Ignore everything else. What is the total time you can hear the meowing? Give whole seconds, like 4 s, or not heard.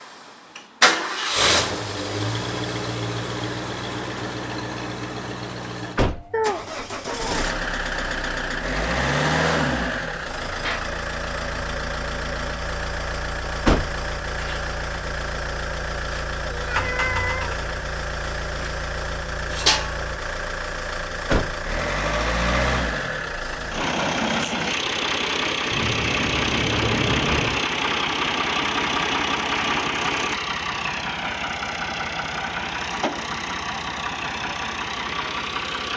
4 s.